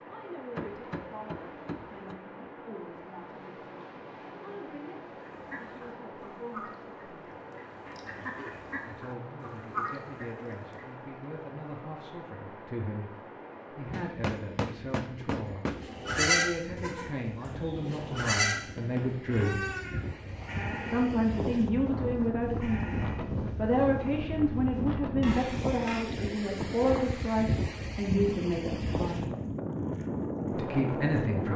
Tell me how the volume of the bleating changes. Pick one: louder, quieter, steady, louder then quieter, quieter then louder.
quieter.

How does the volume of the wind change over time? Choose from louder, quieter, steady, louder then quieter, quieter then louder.
louder.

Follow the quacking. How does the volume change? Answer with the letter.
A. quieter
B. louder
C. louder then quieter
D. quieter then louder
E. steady
B.